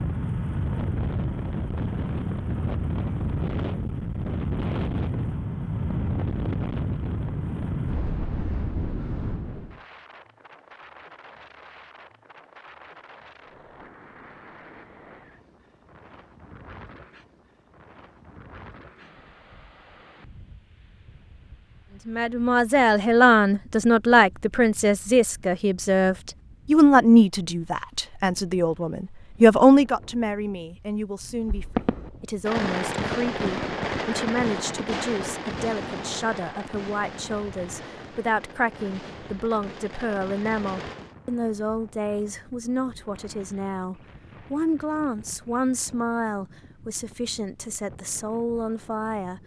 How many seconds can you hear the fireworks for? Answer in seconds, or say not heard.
10 s.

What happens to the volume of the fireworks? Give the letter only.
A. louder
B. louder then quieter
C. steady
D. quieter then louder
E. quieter
E.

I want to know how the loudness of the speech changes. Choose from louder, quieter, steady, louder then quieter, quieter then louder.
quieter.